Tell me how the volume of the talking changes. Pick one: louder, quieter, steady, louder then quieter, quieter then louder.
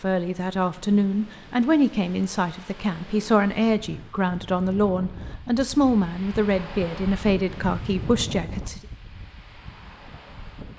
steady.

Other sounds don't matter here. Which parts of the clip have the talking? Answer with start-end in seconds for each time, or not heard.
0.0-8.8.